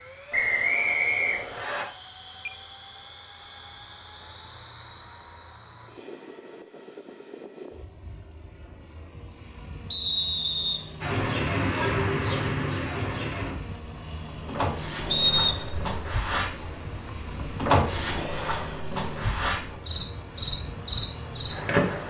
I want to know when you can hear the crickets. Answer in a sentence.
You can hear the crickets from 11.0 to 22.0 s.